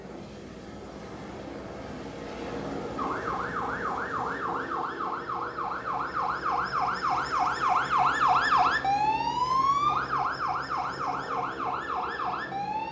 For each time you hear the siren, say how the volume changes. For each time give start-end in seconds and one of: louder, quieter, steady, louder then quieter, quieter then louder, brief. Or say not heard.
3.0-12.8 louder then quieter.